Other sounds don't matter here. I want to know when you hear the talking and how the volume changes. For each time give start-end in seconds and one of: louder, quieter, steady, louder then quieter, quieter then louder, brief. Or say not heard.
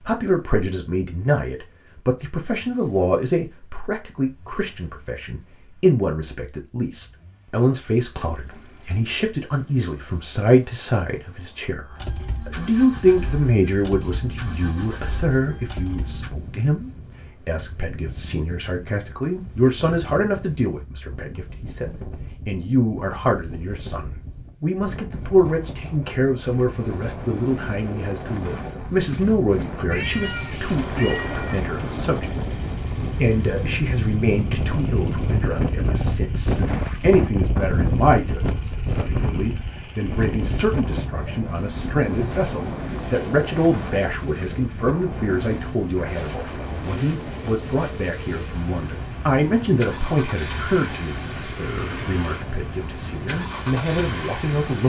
0.0-54.8 steady.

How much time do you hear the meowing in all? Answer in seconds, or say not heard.
2 s.